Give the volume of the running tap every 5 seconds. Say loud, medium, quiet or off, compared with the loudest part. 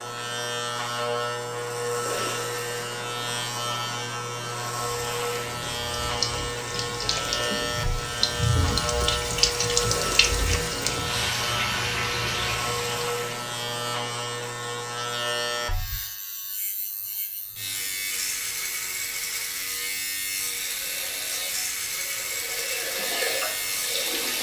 off, loud, loud, off, medium.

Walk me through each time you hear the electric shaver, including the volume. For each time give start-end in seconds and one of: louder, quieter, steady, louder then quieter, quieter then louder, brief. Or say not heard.
0.0-24.3 steady.